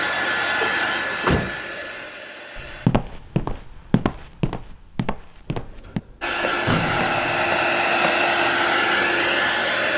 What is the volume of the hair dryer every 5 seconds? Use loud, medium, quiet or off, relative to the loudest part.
medium, loud.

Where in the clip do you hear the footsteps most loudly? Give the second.
3 s.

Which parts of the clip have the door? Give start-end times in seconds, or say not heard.
0.6-2.0, 5.5-7.5.